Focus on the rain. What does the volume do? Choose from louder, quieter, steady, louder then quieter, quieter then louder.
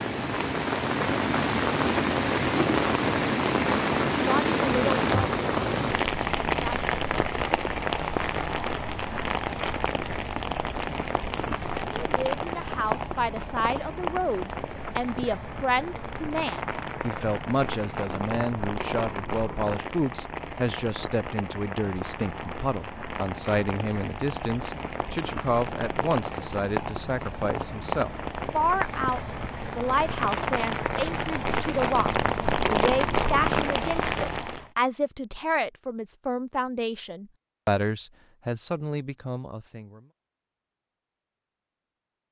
quieter then louder.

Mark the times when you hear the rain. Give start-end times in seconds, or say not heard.
0.0-34.6.